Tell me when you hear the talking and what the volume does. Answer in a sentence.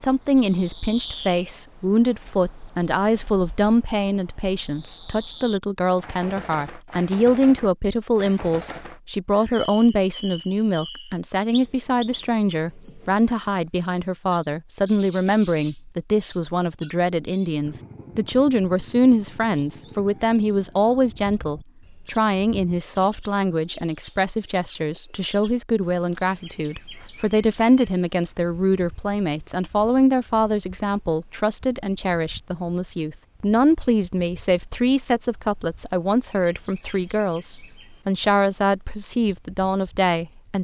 The talking can be heard from 0.0 to 40.6 s, at a steady volume.